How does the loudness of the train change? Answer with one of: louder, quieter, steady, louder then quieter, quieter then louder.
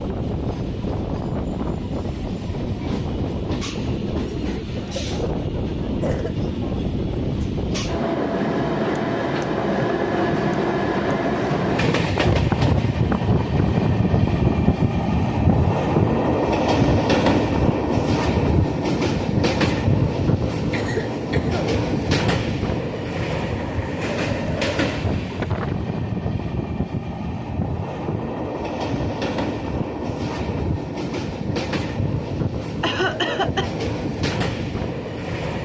louder then quieter.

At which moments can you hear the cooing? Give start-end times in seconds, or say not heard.
not heard.